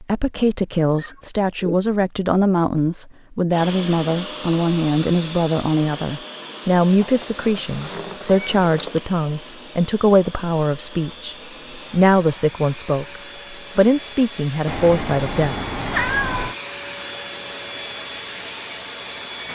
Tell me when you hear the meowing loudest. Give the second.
16 s.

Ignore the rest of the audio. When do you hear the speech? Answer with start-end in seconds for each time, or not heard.
0.0-15.6.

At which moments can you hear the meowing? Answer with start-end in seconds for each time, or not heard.
0.9-1.8, 7.0-9.0, 14.7-16.6.